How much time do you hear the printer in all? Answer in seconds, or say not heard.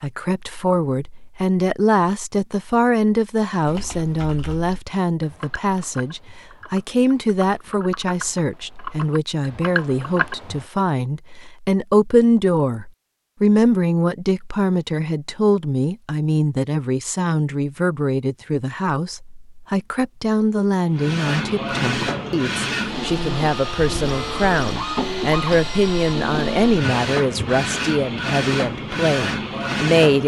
9 s.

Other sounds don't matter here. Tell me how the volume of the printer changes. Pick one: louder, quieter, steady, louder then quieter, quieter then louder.
steady.